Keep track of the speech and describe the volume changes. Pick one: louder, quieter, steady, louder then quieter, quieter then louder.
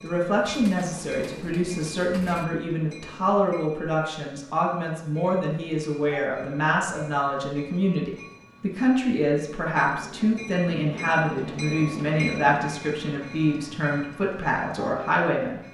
steady.